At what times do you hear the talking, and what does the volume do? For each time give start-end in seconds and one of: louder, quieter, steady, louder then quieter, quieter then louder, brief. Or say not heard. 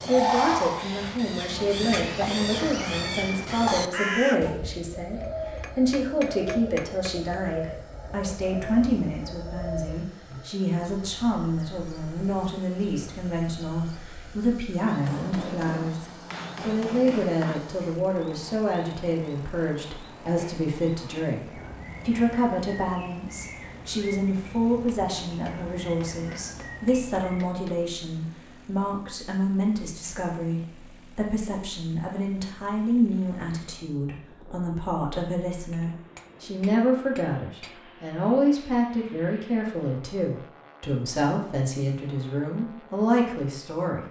0.0-44.0 steady.